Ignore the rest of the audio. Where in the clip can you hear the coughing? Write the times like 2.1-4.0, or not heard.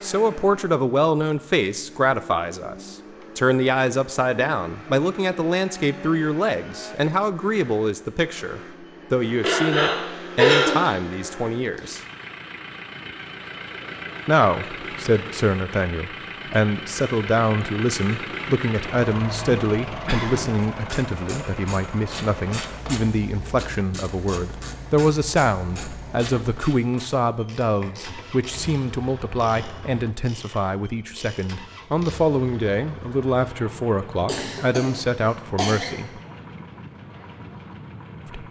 9.4-10.9, 19.2-20.6, 34.2-36.0.